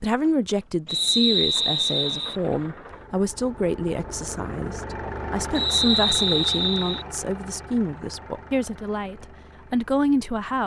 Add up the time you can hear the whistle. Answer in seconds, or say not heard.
3 s.